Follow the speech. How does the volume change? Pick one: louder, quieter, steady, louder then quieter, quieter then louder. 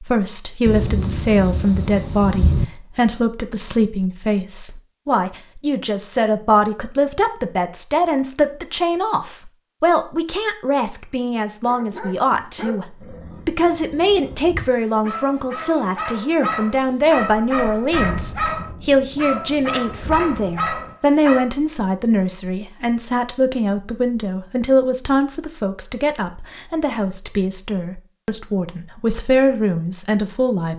steady.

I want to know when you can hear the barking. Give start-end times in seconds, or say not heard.
11.7-21.5.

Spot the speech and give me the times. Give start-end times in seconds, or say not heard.
0.0-30.7.